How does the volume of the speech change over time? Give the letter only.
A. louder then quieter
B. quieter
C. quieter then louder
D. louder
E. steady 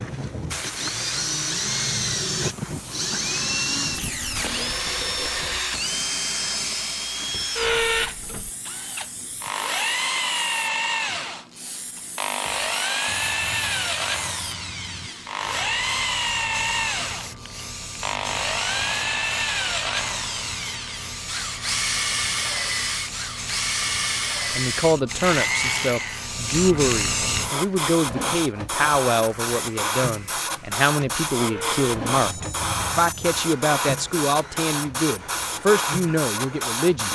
E.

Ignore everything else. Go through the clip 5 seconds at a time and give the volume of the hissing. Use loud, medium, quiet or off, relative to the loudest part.
medium, quiet, quiet, medium, medium, loud, loud, loud.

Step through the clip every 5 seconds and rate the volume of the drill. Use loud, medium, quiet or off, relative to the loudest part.
loud, loud, loud, loud, loud, loud, quiet, quiet.